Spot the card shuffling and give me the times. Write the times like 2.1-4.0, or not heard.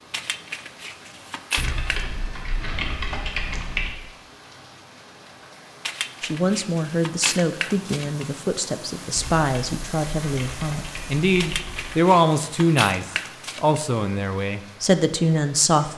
0.1-2.0, 5.8-8.4, 11.3-13.8.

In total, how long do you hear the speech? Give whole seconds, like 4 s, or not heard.
10 s.